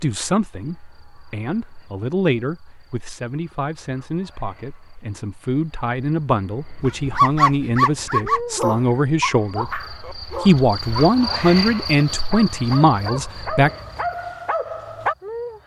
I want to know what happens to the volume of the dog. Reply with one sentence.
The loudness of the dog goes down, then up.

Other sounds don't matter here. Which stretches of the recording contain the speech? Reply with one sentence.
You can hear the speech from 0.0 to 13.7 s.